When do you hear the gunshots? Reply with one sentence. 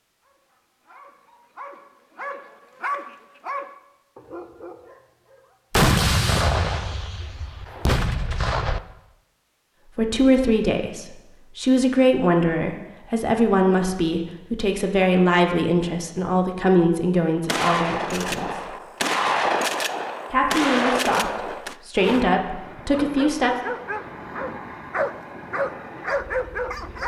You can hear the gunshots from 5.7 to 8.8 s and from 17.4 to 21.8 s.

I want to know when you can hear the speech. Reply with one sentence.
The speech can be heard from 9.9 to 18.8 s and from 20.2 to 23.6 s.